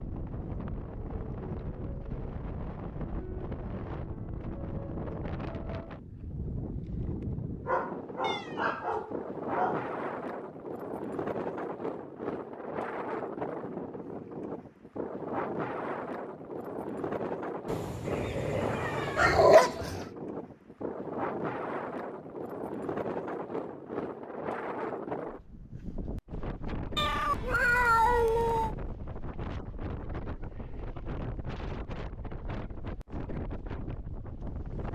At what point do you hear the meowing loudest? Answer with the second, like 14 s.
28 s.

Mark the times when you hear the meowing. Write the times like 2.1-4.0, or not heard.
8.2-9.1, 17.6-19.4, 26.9-28.8.